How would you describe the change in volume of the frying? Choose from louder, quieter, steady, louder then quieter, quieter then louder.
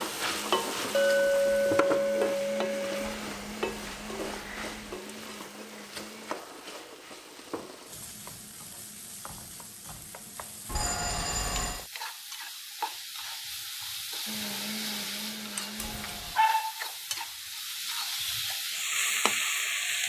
quieter then louder.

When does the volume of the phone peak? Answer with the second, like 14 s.
11 s.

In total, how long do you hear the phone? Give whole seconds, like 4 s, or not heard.
4 s.